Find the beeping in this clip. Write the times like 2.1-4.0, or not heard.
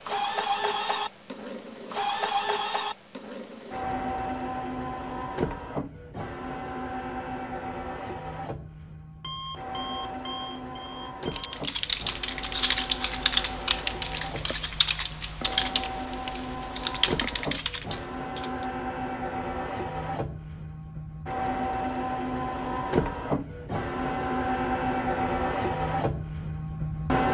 9.2-11.6.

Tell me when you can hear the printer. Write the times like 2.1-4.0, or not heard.
0.0-27.2.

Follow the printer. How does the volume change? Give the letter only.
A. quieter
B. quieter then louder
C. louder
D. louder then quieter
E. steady
B.